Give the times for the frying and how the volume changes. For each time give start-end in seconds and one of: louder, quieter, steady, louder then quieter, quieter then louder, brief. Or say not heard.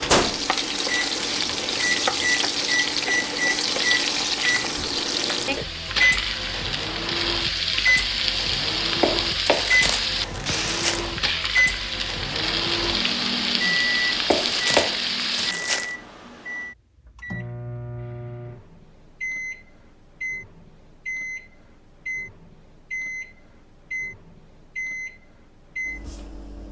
0.0-15.6 steady.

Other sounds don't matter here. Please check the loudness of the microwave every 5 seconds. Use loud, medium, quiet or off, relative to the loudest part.
loud, loud, loud, medium, medium, medium.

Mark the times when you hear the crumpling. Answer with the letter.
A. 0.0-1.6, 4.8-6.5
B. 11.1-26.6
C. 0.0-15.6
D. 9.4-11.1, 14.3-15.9
D.